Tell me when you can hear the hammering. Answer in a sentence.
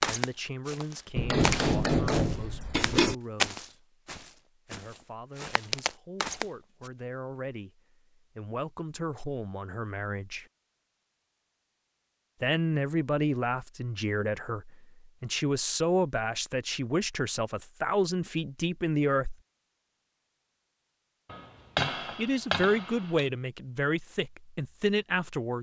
The hammering can be heard from 1.1 to 3.1 s and from 21.3 to 23.2 s.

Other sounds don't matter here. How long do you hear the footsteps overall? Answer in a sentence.
You can hear the footsteps for 7 seconds altogether.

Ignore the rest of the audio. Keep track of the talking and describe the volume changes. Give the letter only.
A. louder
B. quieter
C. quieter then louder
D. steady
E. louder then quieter
A.